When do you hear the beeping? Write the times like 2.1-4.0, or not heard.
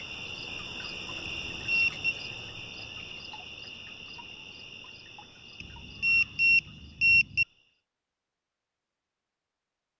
1.2-2.1, 5.6-7.5.